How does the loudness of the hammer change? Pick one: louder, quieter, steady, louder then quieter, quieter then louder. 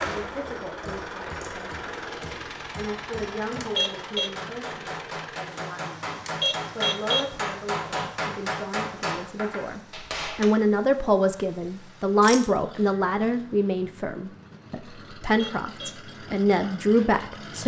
louder.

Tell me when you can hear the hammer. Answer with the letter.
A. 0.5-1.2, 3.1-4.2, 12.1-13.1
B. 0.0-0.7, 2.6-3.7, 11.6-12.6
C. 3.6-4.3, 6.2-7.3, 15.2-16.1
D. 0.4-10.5
D.